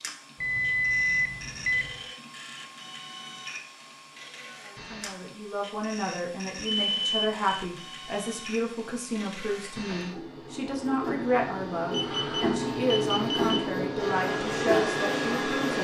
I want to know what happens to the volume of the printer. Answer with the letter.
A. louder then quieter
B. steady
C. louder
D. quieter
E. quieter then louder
C.